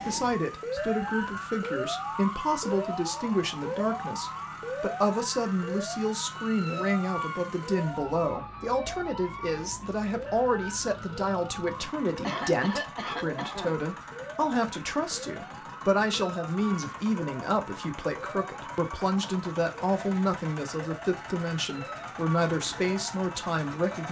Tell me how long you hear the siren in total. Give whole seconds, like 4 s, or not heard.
24 s.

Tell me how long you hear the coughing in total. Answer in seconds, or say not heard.
2 s.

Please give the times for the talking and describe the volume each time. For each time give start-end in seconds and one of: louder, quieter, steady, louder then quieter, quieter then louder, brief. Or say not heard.
0.1-24.0 steady.